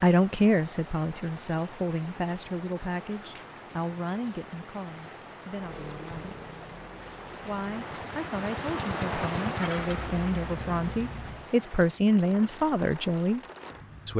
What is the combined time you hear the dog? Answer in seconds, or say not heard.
not heard.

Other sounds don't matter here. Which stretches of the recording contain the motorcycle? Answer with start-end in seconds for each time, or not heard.
5.5-11.5.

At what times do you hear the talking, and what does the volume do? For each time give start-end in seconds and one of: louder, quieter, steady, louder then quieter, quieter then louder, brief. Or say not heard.
0.0-6.4 quieter
7.5-13.4 louder.